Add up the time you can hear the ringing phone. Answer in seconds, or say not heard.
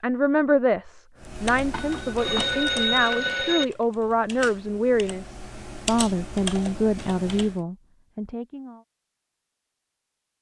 2 s.